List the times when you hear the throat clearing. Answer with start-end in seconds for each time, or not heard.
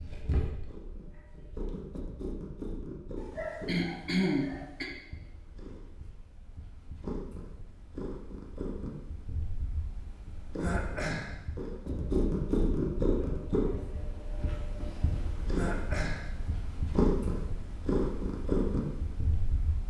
3.1-4.9, 10.6-11.3, 15.5-16.3.